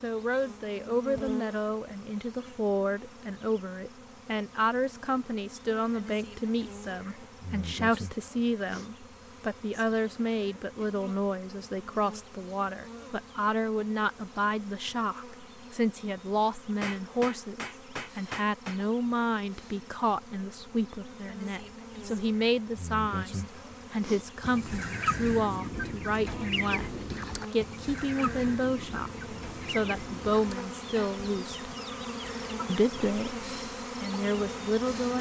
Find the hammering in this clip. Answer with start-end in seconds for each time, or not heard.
16.8-18.8.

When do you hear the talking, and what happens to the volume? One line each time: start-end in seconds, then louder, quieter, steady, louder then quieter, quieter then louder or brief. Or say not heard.
0.0-31.6 steady
32.6-35.1 brief.